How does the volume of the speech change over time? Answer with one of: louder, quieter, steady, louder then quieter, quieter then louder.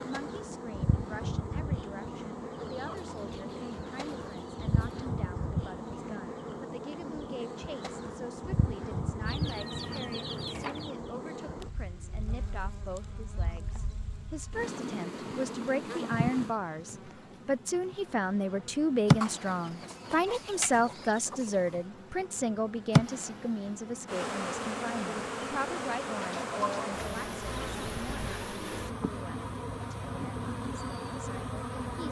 louder then quieter.